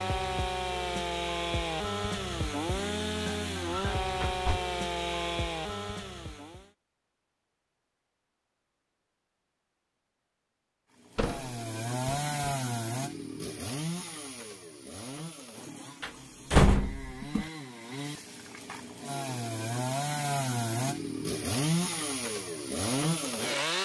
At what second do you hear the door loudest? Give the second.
17 s.